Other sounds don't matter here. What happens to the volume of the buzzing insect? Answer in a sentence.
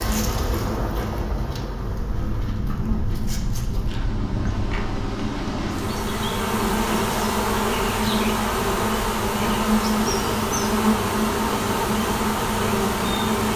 The volume of the buzzing insect goes up.